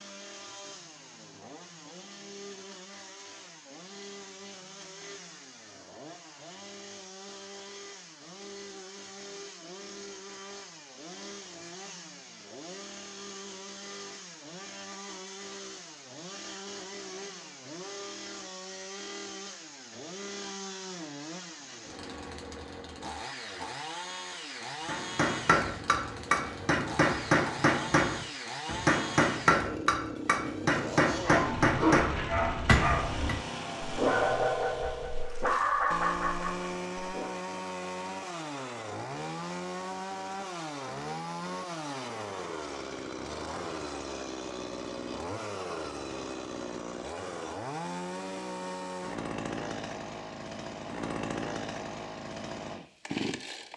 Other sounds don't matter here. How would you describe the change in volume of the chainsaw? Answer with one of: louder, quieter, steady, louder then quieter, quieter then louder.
louder.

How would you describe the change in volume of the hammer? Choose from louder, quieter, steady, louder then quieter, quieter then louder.
steady.